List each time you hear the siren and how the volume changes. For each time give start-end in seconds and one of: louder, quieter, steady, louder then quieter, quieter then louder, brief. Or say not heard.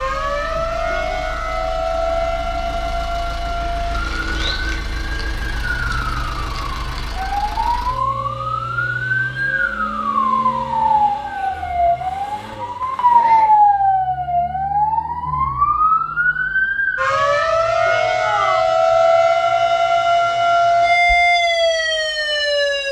0.0-22.8 louder.